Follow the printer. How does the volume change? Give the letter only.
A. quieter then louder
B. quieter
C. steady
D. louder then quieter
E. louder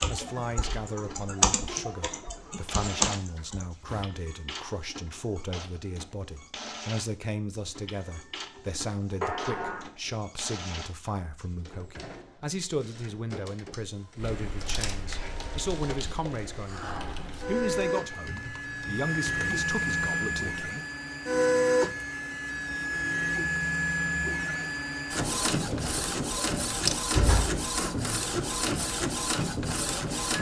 E.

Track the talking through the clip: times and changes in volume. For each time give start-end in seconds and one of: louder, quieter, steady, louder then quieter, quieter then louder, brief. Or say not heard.
0.1-20.9 steady.